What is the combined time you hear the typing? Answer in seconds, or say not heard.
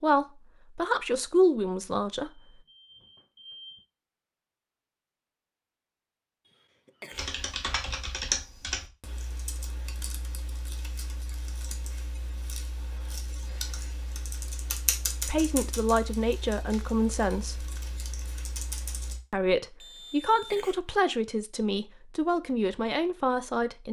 12 s.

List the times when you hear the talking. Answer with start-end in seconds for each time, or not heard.
0.0-2.4, 15.2-17.6, 19.3-23.8.